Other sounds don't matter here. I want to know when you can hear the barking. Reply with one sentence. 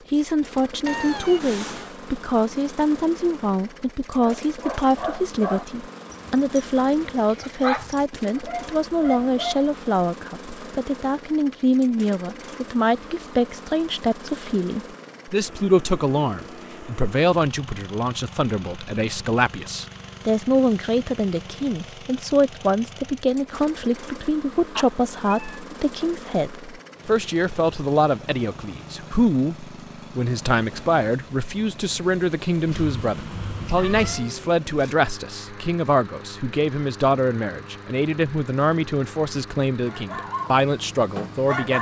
The barking can be heard from 4.2 to 9.7 s and from 39.9 to 41.7 s.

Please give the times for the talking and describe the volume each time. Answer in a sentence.
You can hear the talking from 0.1 to 41.7 s, at a steady volume.